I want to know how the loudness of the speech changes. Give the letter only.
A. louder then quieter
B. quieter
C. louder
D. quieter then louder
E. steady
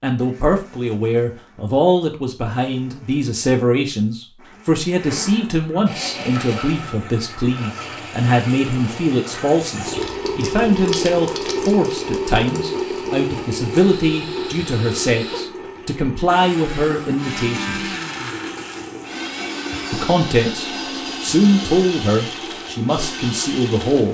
E.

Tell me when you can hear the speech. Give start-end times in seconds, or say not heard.
0.0-17.9, 19.9-24.0.